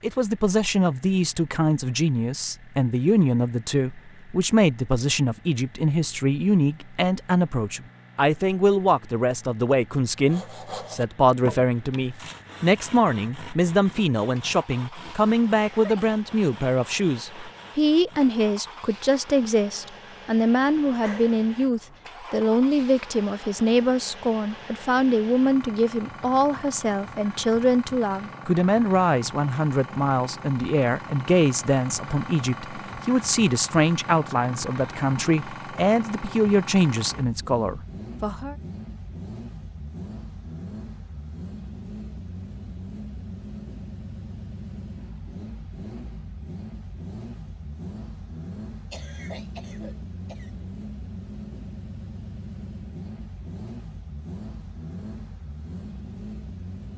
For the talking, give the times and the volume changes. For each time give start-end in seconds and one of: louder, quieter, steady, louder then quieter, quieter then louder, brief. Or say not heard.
0.0-38.5 steady.